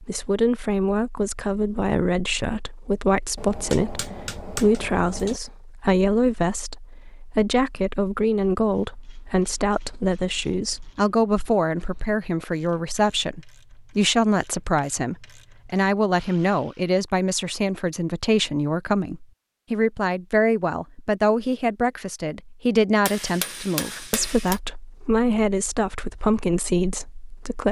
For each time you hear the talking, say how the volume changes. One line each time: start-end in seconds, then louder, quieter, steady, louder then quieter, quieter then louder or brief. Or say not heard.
0.0-27.6 steady.